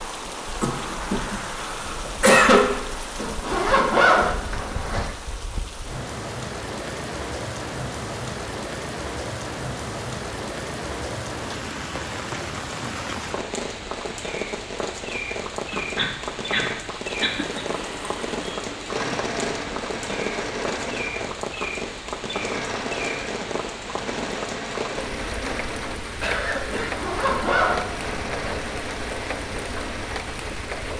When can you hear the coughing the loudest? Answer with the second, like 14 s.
2 s.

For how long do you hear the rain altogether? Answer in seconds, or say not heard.
31 s.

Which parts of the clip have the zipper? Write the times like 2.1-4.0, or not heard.
3.1-5.0, 26.7-28.6.